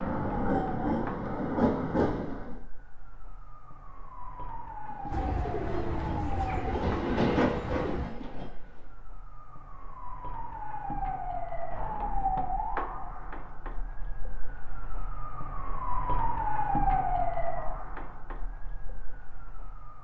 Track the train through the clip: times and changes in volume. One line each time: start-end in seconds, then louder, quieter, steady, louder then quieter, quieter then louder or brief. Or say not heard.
0.0-2.6 brief
4.8-8.9 louder then quieter.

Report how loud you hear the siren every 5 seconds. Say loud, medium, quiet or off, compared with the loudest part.
medium, medium, loud, loud.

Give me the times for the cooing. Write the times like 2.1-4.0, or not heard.
5.1-8.1.